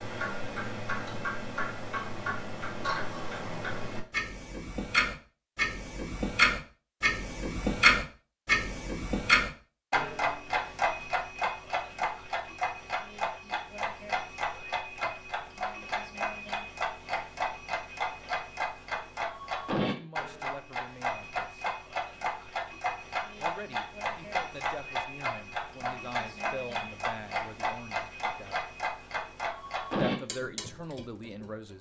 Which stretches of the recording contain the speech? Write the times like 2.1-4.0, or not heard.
19.9-21.6, 23.4-28.6, 30.0-31.7.